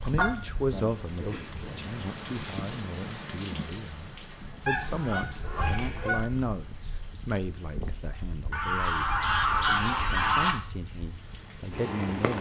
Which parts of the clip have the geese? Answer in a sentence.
The geese can be heard from 0.1 to 1.9 s, from 4.7 to 6.2 s and from 8.5 to 10.6 s.